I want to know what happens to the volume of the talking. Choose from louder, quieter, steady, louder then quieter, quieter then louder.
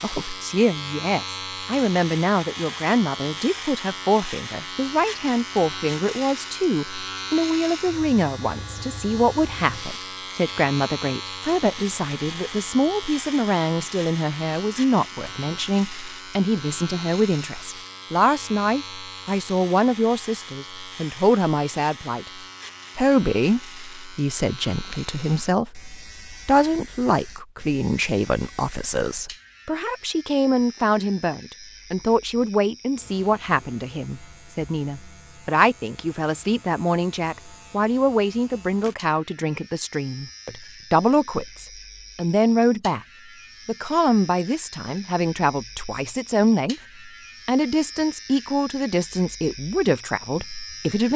steady.